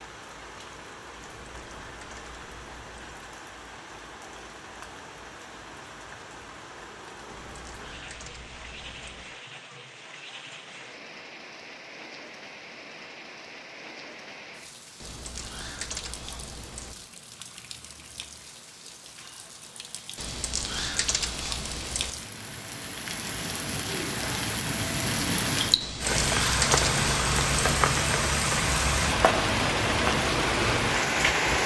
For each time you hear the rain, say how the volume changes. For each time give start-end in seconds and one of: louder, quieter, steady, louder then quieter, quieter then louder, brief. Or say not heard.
0.0-31.6 louder.